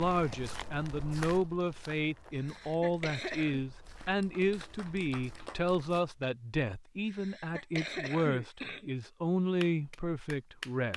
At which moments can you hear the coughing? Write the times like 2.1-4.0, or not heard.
2.4-3.6, 7.0-8.9.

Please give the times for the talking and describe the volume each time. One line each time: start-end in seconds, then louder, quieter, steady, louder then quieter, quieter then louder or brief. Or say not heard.
0.0-10.9 steady.